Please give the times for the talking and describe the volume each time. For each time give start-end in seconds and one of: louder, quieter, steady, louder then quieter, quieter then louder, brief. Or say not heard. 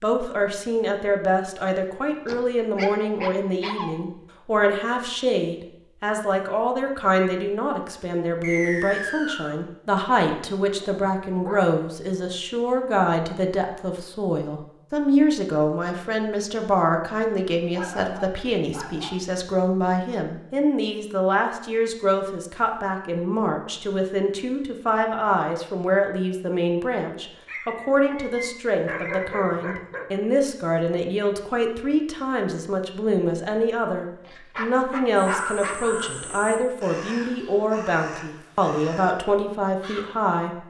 0.0-40.6 steady.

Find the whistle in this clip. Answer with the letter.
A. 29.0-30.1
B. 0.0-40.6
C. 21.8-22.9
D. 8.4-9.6
D.